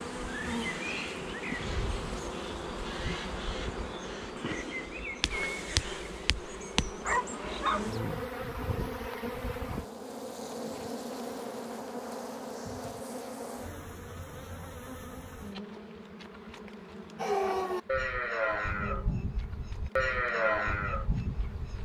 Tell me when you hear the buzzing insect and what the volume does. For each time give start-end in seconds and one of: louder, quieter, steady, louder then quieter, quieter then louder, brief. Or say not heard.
0.0-21.8 quieter.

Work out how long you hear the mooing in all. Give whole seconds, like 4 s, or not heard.
5 s.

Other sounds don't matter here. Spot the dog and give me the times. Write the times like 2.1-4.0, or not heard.
7.0-7.9.